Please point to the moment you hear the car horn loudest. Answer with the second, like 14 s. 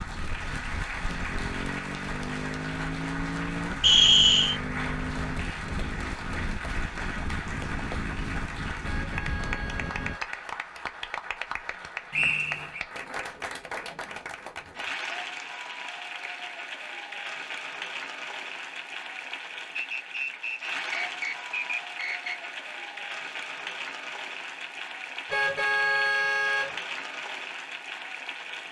26 s.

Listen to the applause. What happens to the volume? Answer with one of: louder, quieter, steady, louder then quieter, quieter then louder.
steady.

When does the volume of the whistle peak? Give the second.
4 s.